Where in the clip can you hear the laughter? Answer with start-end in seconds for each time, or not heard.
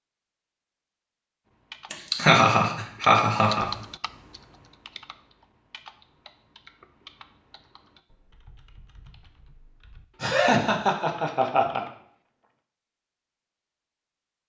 1.9-3.7, 10.2-11.8.